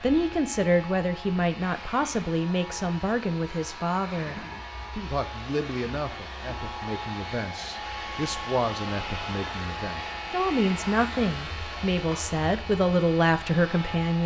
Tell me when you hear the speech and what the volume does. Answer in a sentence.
You can hear the speech from 0.0 to 14.2 s, getting quieter then louder.